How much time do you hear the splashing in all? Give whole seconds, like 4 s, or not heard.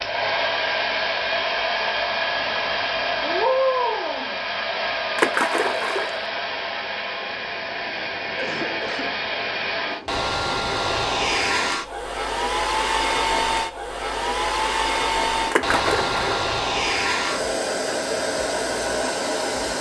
2 s.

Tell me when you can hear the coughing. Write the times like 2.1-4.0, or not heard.
8.3-9.2.